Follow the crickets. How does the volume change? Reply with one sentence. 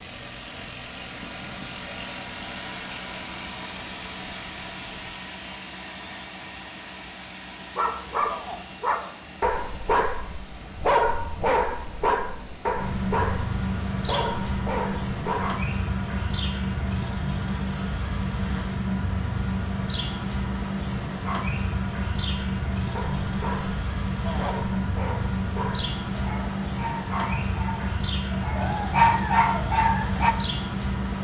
The loudness of the crickets goes up.